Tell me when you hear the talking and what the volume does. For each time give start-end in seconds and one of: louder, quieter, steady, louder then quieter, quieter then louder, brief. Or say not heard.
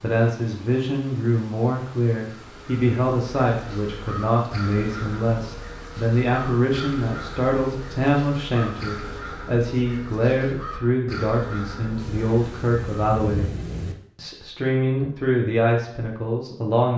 0.0-13.5 steady
14.2-16.9 brief.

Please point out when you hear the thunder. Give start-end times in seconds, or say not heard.
11.9-13.9.